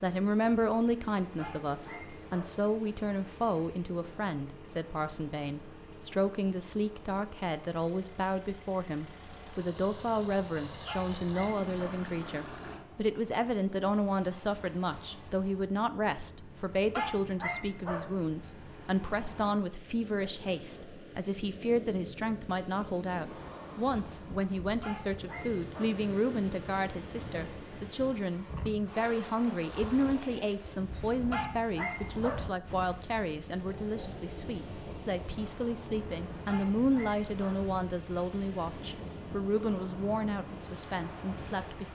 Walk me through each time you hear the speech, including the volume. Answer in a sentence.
You can hear the speech from 0.0 to 41.9 s, at a steady volume.